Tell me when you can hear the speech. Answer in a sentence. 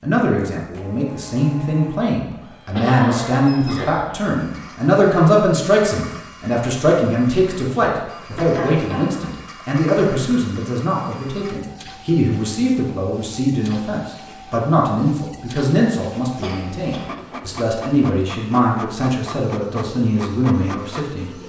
You can hear the speech from 0.0 to 21.3 s.